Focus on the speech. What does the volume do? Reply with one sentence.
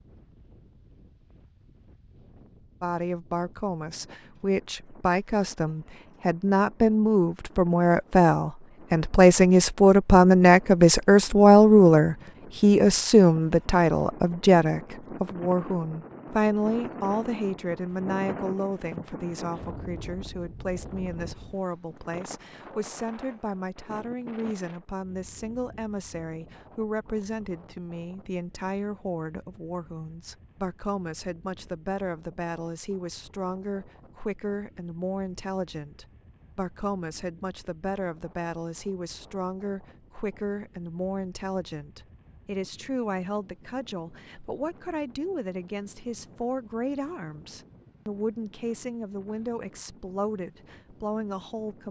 The volume of the speech goes down.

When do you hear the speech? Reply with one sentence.
You can hear the speech from 2.8 to 51.8 s.